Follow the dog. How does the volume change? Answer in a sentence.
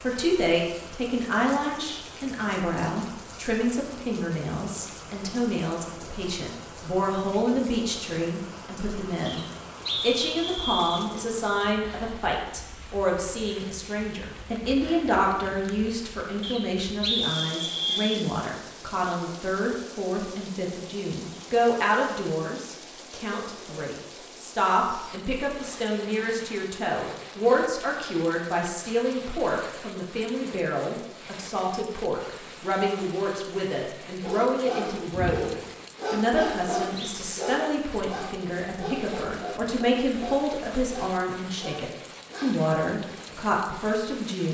The loudness of the dog goes down.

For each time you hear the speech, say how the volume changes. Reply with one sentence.
The speech can be heard from 0.0 to 44.4 s, at a steady volume.